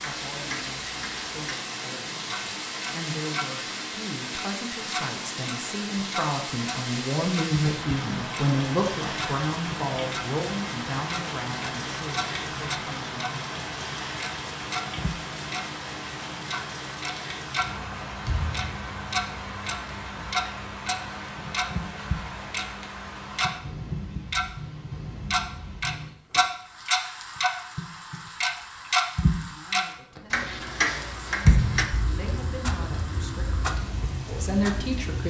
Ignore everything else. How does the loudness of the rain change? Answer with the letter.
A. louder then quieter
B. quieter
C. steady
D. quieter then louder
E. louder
B.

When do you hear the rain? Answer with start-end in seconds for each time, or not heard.
0.0-35.2.